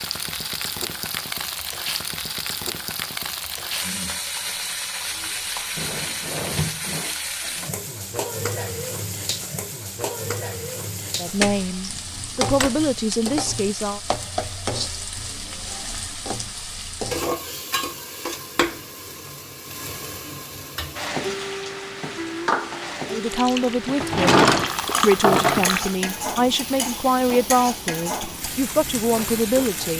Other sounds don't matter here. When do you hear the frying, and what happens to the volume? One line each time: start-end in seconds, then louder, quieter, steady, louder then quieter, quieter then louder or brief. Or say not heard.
0.0-29.9 steady.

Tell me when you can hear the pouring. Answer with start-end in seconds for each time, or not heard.
23.3-26.0.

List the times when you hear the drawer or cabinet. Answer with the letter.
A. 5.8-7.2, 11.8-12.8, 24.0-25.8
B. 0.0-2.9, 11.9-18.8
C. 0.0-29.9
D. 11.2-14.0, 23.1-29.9
A.